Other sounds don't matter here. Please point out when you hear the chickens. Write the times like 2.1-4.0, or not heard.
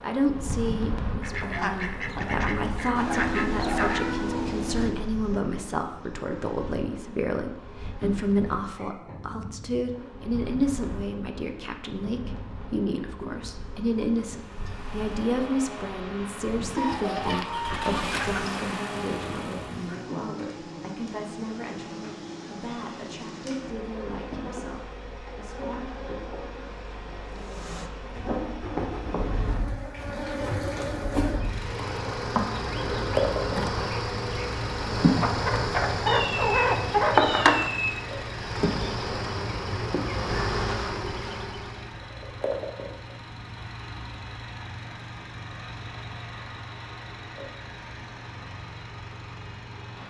1.2-4.0, 16.8-18.6, 35.2-37.1.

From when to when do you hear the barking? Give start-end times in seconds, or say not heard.
not heard.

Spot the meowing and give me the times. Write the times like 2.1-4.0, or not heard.
3.0-4.9, 36.0-38.0.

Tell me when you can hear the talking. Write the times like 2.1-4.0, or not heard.
0.0-25.6.